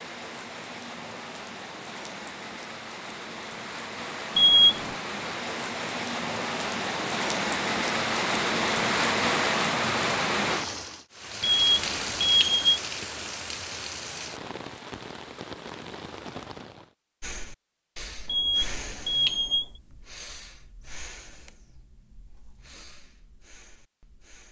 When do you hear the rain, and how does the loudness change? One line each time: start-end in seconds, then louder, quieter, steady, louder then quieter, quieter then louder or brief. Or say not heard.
0.0-16.9 louder then quieter.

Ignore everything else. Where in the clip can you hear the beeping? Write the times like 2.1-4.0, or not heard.
4.3-5.0, 11.4-12.8, 18.2-19.6.